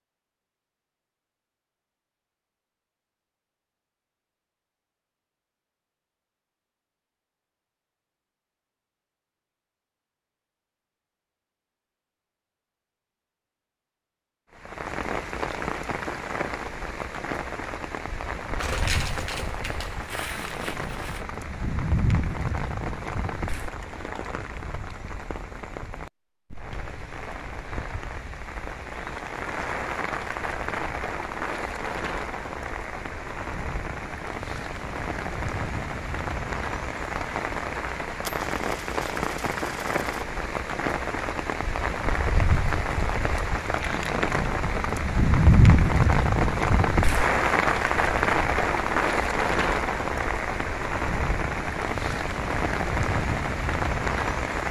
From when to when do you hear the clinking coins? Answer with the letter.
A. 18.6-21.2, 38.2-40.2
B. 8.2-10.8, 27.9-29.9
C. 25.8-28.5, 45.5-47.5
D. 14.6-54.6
A.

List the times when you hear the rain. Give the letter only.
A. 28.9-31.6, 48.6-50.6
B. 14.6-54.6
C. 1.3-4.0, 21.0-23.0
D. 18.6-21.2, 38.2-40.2
B.